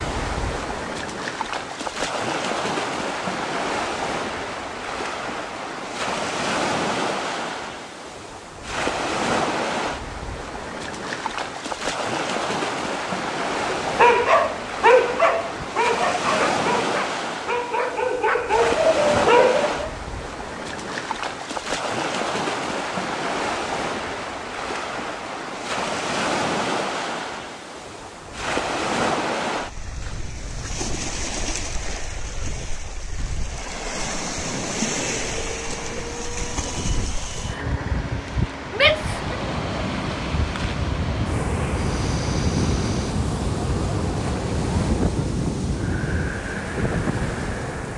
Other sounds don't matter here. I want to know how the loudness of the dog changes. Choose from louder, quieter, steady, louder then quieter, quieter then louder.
quieter then louder.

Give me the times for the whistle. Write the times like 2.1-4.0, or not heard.
not heard.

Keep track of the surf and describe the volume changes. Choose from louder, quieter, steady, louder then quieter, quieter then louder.
steady.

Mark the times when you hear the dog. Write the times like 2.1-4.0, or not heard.
13.6-19.9.